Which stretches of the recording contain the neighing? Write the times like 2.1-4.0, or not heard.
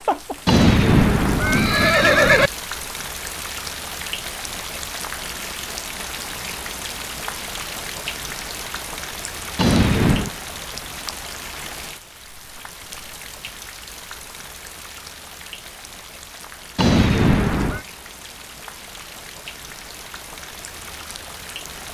0.5-2.5, 9.6-10.3, 16.8-17.9.